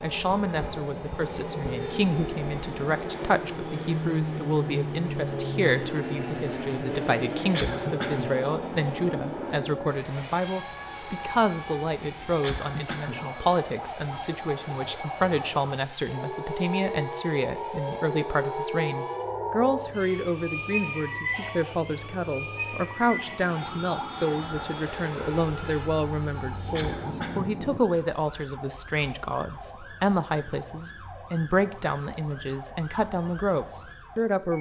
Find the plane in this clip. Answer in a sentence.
The plane can be heard from 0.0 to 27.8 s.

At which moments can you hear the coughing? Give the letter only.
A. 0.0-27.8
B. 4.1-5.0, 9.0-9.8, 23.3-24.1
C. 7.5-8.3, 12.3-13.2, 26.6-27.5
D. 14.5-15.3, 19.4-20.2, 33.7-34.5
C.